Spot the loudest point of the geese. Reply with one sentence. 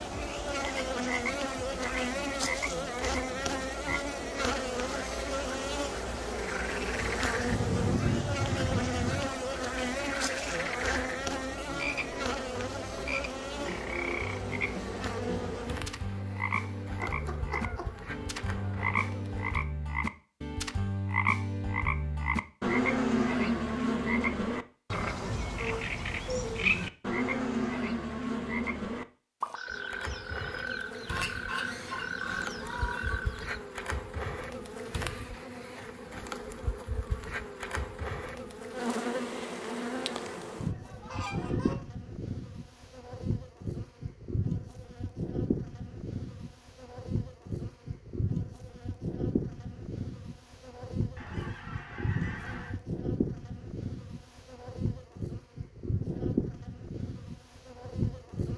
The volume of the geese peaks at 8 seconds.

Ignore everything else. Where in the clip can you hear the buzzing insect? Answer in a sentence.
You can hear the buzzing insect from 0.0 to 19.6 s and from 29.6 to 58.5 s.